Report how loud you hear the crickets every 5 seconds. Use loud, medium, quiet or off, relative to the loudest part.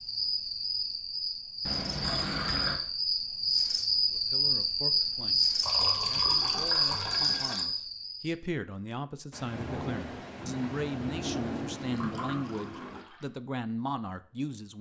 loud, loud, off.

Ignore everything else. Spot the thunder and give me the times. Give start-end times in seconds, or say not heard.
9.3-13.1.